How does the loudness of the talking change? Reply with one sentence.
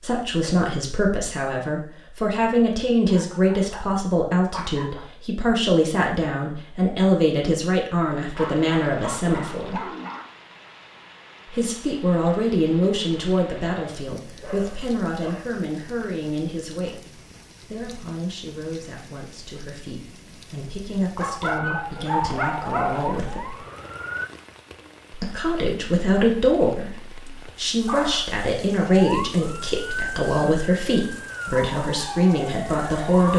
The volume of the talking goes down, then up.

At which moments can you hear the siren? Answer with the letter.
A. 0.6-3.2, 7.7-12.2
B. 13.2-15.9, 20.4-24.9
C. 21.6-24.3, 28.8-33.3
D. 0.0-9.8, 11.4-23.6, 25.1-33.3
C.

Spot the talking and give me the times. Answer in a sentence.
You can hear the talking from 0.0 to 9.8 s, from 11.4 to 23.6 s and from 25.1 to 33.3 s.